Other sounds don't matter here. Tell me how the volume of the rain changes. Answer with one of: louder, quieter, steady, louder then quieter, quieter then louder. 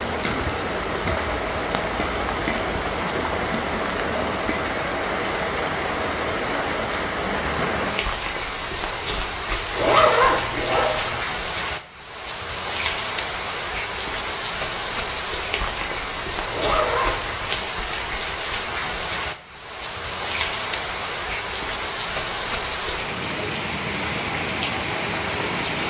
steady.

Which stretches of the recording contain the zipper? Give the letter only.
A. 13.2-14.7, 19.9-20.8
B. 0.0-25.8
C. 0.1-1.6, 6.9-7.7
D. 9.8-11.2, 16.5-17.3
D.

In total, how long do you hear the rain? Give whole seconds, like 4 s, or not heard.
26 s.